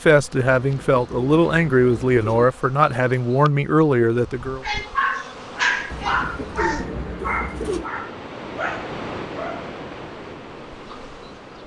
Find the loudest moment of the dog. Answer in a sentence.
The loudest moment of the dog is at 6 seconds.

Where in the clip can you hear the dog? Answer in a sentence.
You can hear the dog from 4.6 to 9.7 s.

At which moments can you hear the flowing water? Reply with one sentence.
The flowing water can be heard from 5.3 to 11.6 s.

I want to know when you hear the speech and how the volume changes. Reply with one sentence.
You can hear the speech from 0.0 to 4.7 s, at a steady volume.